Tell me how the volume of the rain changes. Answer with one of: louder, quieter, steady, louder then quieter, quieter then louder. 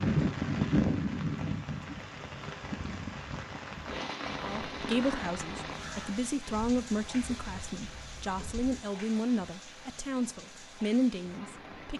quieter.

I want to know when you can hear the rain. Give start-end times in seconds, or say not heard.
0.0-11.9.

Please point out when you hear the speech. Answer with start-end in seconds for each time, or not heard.
4.4-11.9.